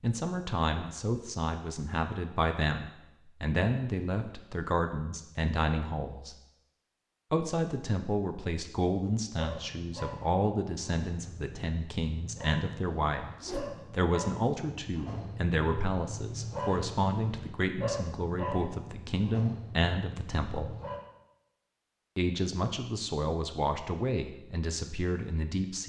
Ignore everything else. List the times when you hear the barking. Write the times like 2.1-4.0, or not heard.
9.3-21.0.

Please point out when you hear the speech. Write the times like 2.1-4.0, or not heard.
0.0-6.3, 7.3-20.8, 22.1-25.8.